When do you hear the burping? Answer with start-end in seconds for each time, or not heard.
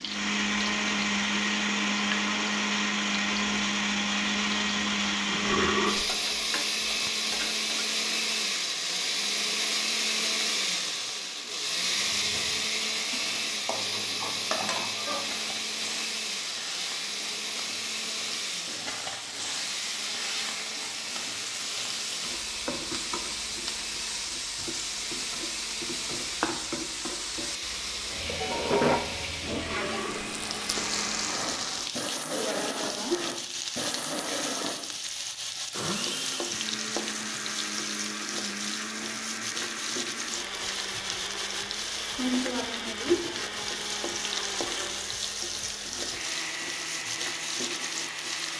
5.2-6.0, 29.5-30.2.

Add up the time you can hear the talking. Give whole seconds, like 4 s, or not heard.
not heard.